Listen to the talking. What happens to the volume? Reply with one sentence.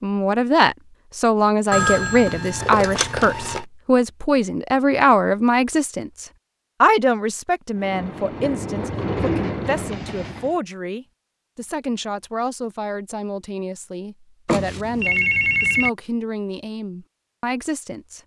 The loudness of the talking goes down.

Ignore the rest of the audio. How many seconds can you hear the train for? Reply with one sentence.
The train can be heard for 3 seconds in total.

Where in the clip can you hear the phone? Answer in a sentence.
You can hear the phone from 1.7 to 3.6 s and from 14.4 to 15.9 s.